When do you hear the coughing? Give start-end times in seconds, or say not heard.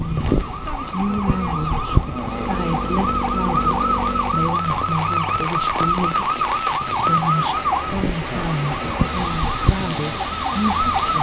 not heard.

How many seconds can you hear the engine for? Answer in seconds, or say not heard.
3 s.